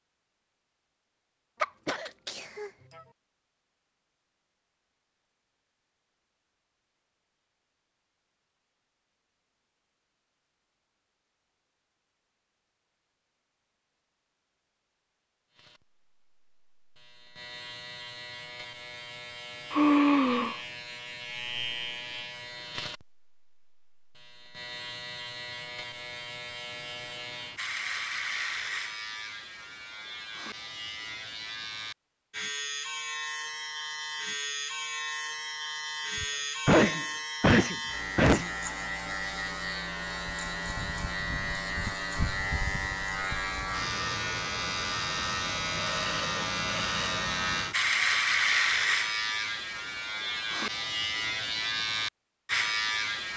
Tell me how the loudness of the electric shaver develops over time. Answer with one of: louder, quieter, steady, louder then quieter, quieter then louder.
louder.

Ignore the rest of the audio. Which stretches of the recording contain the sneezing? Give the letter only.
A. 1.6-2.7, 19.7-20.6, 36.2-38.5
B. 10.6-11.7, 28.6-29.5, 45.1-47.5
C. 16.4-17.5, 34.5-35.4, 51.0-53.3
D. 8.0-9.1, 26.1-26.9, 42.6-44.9
A.